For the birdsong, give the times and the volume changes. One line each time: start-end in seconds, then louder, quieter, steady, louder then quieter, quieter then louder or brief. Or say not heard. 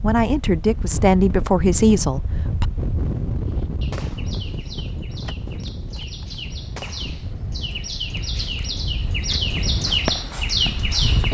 3.4-11.2 louder.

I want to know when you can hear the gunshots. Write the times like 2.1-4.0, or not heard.
3.9-7.2.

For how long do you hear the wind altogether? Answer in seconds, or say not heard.
11 s.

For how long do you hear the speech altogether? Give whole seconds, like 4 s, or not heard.
3 s.